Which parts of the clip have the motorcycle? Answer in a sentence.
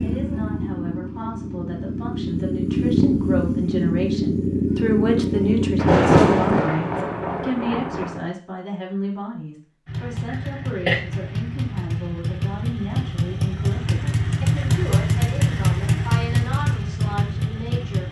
The motorcycle can be heard from 0.0 to 6.7 s and from 9.8 to 18.0 s.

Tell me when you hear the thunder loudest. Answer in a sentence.
The loudest moment of the thunder is at 6 seconds.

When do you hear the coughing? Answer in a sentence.
The coughing can be heard from 10.2 to 11.0 s.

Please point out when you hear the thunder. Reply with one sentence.
You can hear the thunder from 5.8 to 8.2 s.